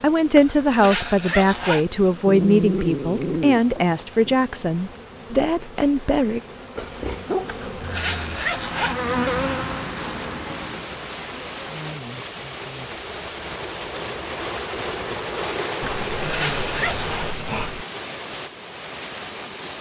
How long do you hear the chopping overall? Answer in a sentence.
You can't hear the chopping here.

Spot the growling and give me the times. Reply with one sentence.
The growling can be heard from 2.2 to 4.3 s, from 6.8 to 8.4 s and from 15.8 to 17.9 s.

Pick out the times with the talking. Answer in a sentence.
The talking can be heard from 0.0 to 6.4 s.